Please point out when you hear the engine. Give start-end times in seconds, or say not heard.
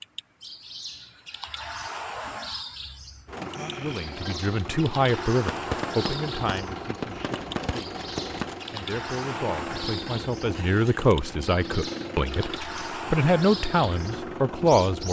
3.2-15.0.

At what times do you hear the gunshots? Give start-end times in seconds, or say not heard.
5.5-8.6.